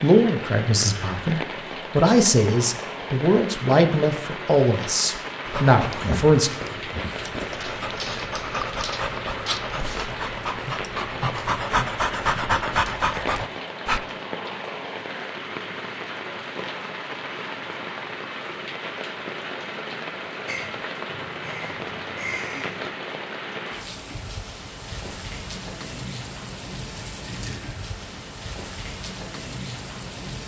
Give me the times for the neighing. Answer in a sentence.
The neighing can be heard from 27.3 to 28.4 s.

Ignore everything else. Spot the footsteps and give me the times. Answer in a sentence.
The footsteps can't be heard in this clip.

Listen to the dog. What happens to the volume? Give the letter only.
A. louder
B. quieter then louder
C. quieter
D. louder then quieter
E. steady
A.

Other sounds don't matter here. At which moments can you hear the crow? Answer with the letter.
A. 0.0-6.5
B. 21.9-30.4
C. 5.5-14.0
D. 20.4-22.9
D.